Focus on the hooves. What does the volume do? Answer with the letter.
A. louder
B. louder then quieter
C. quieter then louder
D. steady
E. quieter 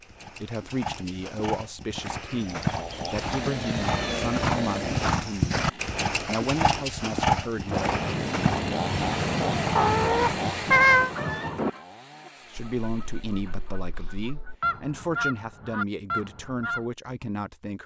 B.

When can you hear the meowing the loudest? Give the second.
11 s.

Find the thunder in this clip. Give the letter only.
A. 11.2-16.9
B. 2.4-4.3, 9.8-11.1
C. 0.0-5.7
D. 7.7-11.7
D.